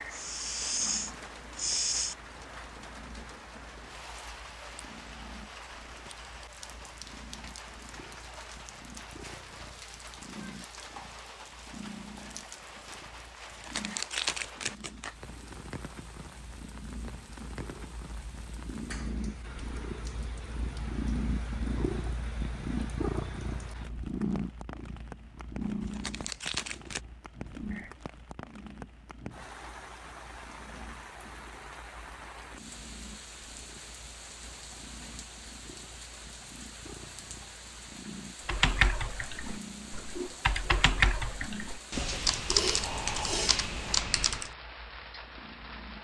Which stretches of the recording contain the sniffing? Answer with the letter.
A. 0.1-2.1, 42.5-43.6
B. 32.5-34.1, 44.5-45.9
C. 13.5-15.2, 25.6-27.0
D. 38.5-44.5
A.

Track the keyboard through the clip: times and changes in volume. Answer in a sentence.
You can hear the keyboard from 38.5 to 44.5 s, getting louder.